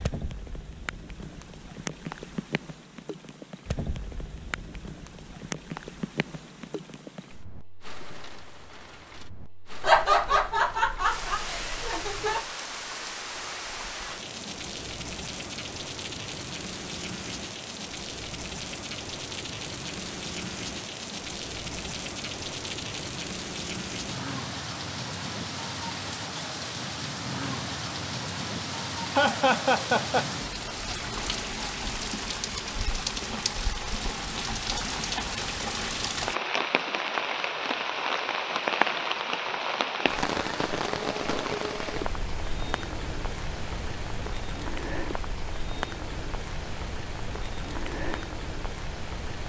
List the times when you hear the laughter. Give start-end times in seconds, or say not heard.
9.8-12.4, 29.1-30.3.